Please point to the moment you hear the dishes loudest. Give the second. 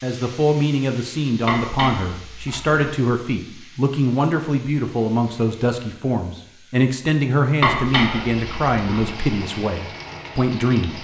8 s.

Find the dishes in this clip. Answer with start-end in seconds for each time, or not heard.
1.4-2.9, 7.6-9.1.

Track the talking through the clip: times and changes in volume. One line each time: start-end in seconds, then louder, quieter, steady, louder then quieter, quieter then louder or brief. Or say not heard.
0.0-11.0 steady.